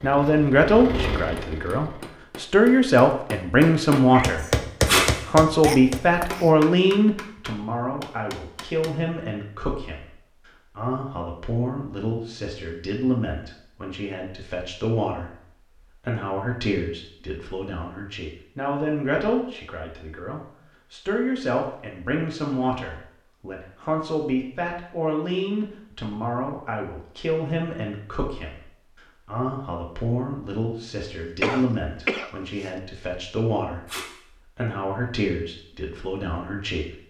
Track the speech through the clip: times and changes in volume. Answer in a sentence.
The speech can be heard from 0.0 to 37.0 s, getting quieter.